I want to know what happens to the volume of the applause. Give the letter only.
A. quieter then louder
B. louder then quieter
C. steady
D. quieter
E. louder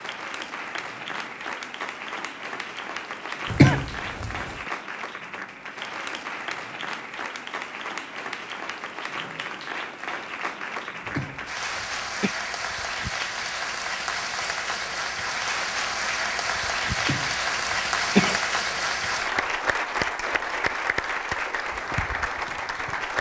E.